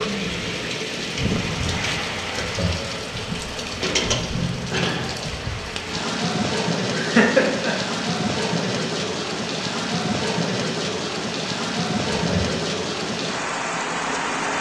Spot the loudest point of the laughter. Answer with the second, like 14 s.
7 s.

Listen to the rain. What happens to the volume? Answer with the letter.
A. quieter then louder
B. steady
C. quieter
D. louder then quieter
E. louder
B.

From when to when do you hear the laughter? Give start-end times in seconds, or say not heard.
2.4-3.0, 7.0-7.8, 12.1-12.6.